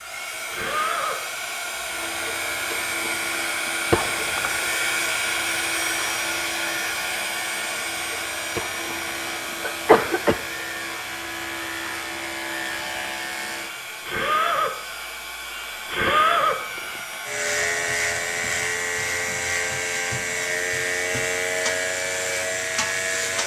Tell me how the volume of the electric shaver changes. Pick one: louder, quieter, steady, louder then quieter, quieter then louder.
louder.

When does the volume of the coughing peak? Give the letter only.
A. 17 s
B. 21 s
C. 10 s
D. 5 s
C.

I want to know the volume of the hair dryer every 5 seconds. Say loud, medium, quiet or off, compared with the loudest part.
loud, loud, medium, medium, medium.